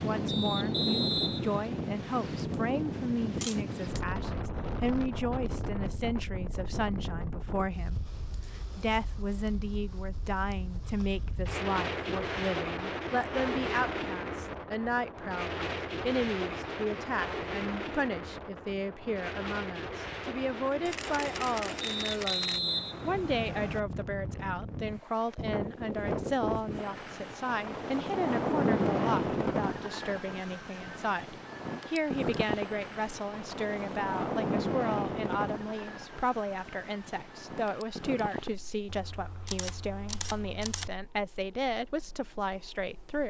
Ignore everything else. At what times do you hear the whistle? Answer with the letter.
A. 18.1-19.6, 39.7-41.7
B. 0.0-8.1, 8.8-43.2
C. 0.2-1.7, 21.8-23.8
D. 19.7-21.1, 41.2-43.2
C.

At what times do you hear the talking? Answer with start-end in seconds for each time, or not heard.
0.0-8.1, 8.8-43.2.